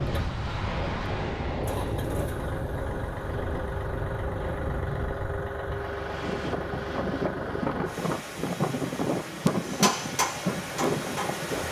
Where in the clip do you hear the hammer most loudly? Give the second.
10 s.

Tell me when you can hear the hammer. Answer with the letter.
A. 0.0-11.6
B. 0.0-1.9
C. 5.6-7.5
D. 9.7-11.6
D.